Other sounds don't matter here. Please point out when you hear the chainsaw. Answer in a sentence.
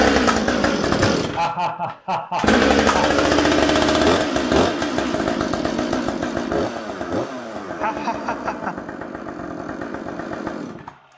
You can hear the chainsaw from 0.0 to 11.1 s.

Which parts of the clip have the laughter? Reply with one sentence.
You can hear the laughter from 1.1 to 3.1 s and from 7.8 to 8.8 s.